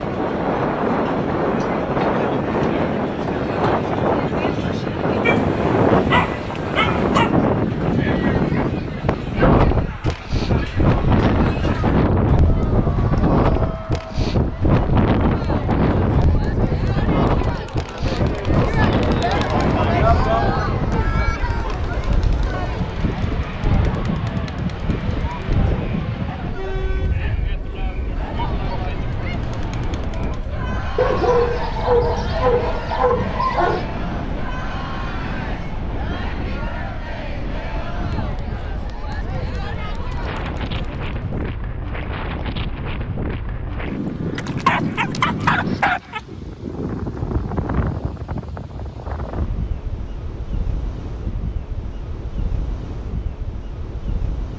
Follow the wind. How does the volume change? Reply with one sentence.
The volume of the wind goes down.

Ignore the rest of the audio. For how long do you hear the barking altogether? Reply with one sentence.
The barking can be heard for 7 seconds in total.